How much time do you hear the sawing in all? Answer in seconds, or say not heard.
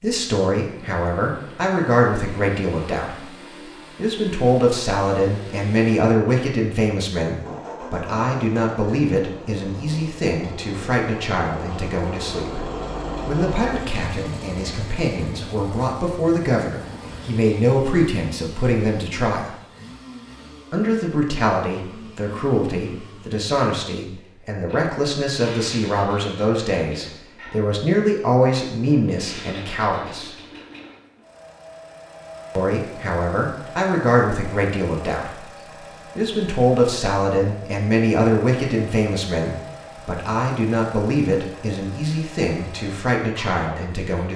not heard.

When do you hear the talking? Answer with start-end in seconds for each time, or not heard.
0.0-3.4, 4.0-19.6, 20.7-30.3, 32.5-35.5, 36.1-44.3.